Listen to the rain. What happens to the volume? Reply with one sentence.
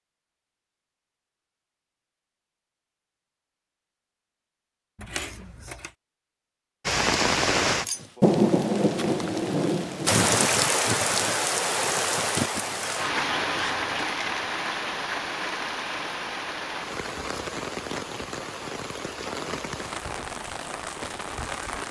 The volume of the rain goes down.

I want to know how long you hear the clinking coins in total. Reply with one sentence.
The clinking coins can be heard for 3 seconds in total.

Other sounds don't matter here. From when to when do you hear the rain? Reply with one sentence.
You can hear the rain from 6.8 to 21.8 s.